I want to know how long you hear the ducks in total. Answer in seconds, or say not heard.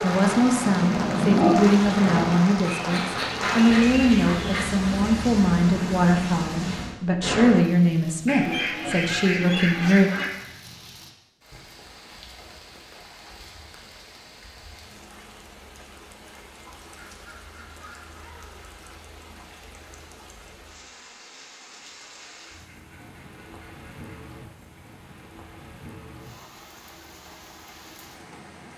9 s.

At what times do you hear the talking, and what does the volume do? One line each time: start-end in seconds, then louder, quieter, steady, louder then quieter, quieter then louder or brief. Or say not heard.
0.0-10.1 steady.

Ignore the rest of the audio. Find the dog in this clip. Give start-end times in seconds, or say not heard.
0.0-2.4.